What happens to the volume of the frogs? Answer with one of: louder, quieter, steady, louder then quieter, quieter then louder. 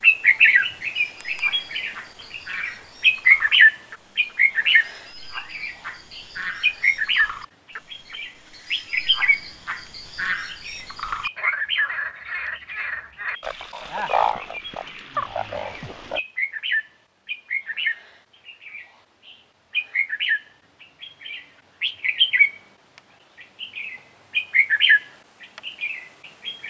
louder.